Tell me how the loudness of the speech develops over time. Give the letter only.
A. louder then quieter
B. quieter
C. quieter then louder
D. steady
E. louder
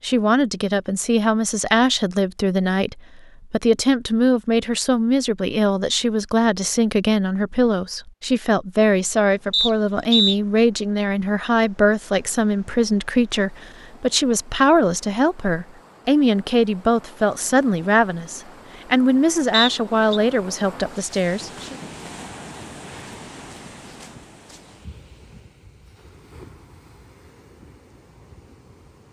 D.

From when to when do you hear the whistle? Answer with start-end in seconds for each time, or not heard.
9.5-10.3, 19.5-20.2.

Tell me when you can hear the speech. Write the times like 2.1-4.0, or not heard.
0.0-21.8.